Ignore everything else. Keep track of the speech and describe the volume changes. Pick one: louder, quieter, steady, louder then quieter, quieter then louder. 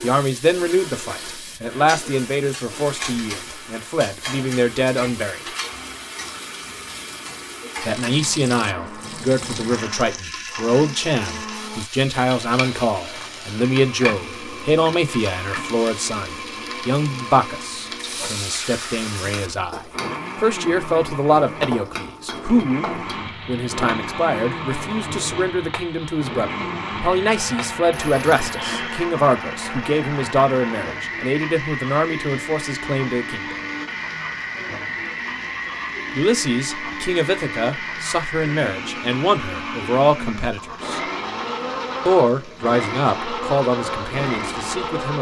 steady.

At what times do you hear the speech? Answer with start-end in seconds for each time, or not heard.
0.0-5.4, 7.8-33.5, 36.1-41.0, 42.0-45.1.